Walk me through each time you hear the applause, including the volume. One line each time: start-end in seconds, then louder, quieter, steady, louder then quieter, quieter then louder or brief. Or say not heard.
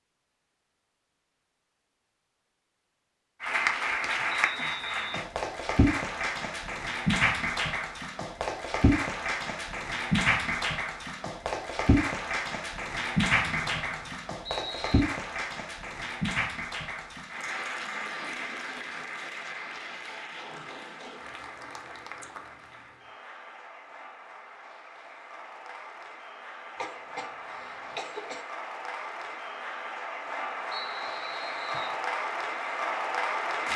3.4-33.7 quieter then louder.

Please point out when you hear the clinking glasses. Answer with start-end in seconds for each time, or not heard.
not heard.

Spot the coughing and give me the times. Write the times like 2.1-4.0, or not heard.
26.8-28.4.